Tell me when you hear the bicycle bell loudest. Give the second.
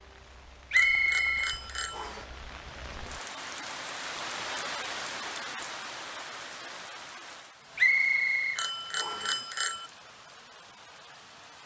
9 s.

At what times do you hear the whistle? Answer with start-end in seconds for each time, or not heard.
0.7-2.2, 7.8-9.3.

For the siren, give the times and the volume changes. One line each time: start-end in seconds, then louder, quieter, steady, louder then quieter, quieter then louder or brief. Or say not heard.
not heard.